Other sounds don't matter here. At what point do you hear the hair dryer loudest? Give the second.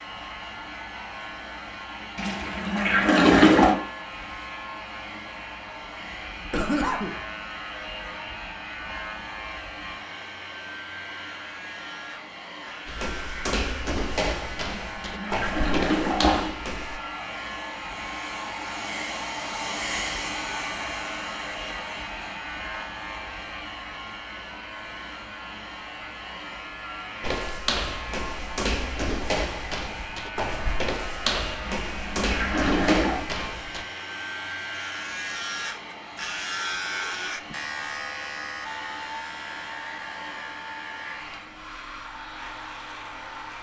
20 s.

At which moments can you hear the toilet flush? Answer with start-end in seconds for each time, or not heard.
2.1-3.8, 14.7-16.6, 31.8-33.2.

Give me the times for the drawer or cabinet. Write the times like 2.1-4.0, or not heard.
not heard.